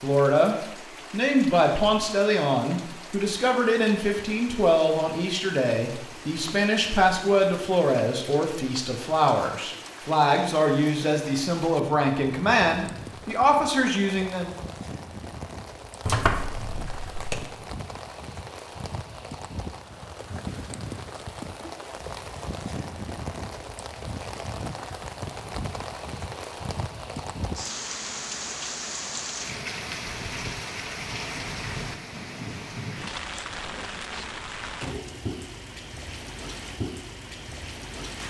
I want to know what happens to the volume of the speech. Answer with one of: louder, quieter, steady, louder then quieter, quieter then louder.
steady.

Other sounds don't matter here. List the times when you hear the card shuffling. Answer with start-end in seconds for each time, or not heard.
16.1-17.5.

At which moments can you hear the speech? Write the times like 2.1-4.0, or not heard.
0.0-14.5.